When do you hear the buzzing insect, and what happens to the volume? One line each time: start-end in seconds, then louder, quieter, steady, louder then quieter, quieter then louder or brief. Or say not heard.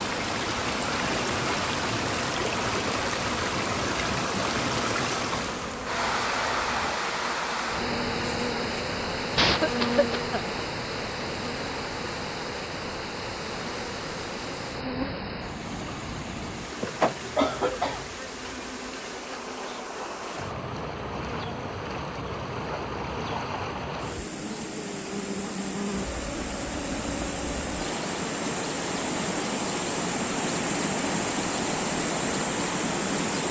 0.0-33.4 steady.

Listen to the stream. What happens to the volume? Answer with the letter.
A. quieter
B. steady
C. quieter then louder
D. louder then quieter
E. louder
C.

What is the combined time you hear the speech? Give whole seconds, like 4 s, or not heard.
not heard.